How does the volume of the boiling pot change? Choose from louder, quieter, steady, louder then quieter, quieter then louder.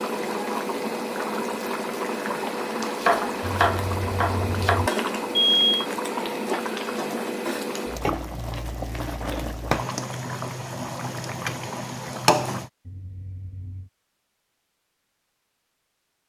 steady.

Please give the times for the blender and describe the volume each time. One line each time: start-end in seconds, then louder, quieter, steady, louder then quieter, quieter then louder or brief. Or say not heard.
not heard.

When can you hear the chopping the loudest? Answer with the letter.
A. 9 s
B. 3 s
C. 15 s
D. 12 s
B.